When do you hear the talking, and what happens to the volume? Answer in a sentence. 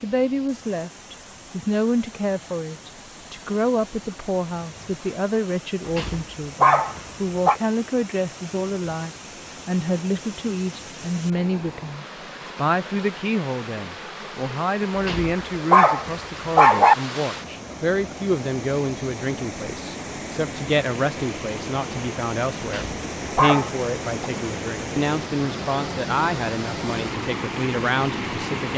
You can hear the talking from 0.0 to 28.7 s, at a steady volume.